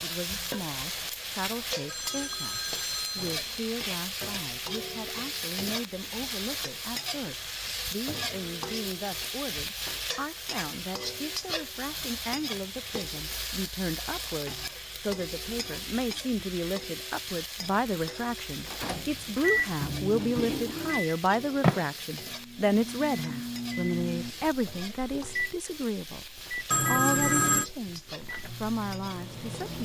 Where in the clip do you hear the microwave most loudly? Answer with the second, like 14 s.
21 s.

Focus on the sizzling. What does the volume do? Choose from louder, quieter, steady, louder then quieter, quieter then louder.
quieter.